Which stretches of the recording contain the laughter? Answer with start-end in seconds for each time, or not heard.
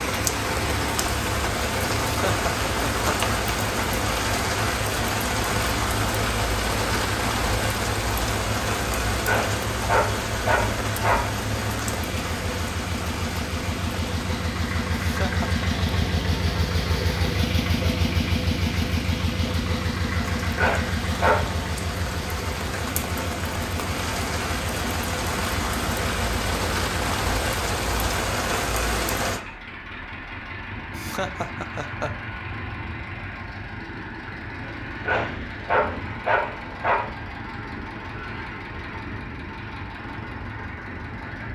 2.0-3.1, 15.0-15.7, 30.9-32.1.